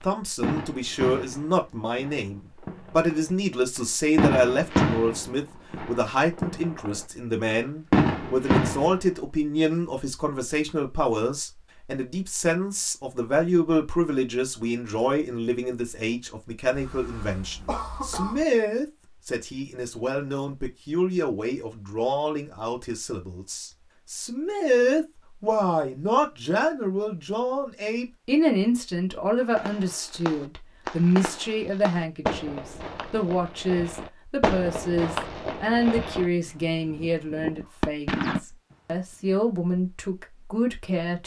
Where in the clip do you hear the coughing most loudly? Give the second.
18 s.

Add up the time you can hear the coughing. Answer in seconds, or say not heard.
2 s.